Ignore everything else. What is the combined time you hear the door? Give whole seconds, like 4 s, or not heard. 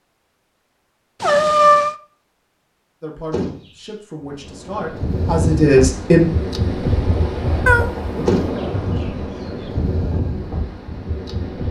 2 s.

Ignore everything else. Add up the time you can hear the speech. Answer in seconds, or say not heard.
3 s.